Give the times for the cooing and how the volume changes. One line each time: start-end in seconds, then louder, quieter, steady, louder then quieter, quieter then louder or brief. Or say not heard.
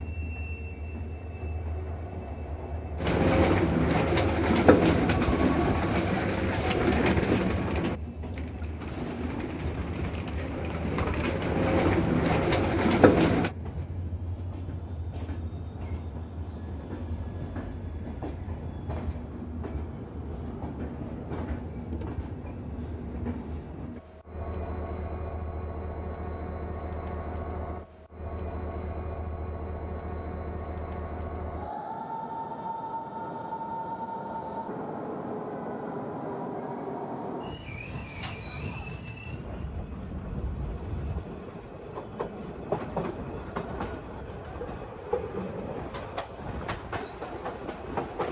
3.0-13.5 quieter then louder.